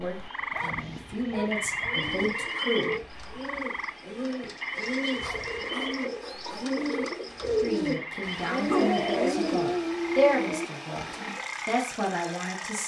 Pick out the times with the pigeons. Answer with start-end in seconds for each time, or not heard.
1.8-9.9.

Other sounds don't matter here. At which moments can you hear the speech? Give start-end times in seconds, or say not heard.
0.0-3.0, 7.6-12.8.